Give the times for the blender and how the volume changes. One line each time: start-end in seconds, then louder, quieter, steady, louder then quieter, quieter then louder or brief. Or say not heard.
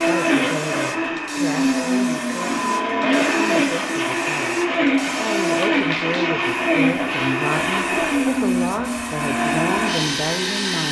0.0-10.8 steady.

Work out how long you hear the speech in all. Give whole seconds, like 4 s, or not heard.
11 s.